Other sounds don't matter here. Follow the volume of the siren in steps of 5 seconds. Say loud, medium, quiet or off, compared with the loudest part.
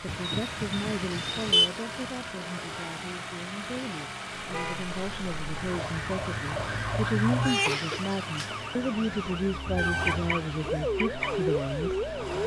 off, loud, loud.